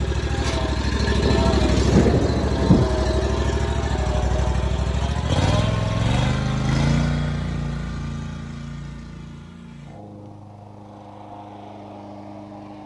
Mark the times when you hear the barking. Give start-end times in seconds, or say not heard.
not heard.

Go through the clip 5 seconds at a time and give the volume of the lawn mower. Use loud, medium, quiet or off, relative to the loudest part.
loud, loud, quiet.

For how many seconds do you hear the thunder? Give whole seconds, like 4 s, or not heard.
2 s.